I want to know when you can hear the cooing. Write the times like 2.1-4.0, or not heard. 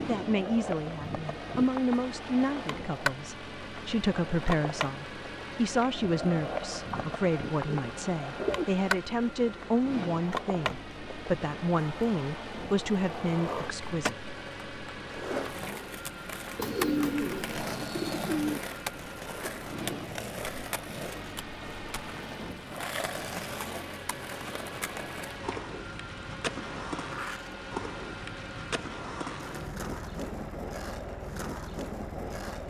6.8-8.7, 16.6-18.6.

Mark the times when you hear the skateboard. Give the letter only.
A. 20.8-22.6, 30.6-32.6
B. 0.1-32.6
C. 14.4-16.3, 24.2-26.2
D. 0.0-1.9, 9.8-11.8
B.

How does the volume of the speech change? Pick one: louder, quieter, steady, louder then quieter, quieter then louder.
steady.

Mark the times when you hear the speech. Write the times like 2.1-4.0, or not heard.
0.0-14.2.